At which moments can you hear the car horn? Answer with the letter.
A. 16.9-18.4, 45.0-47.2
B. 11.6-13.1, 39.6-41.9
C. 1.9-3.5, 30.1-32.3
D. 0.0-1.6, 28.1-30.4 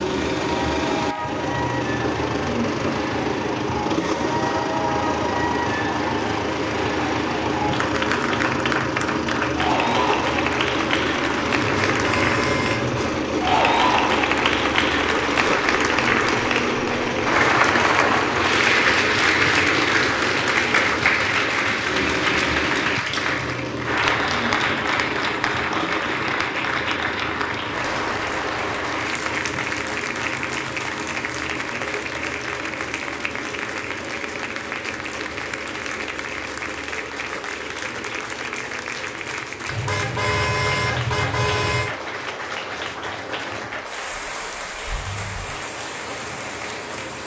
B.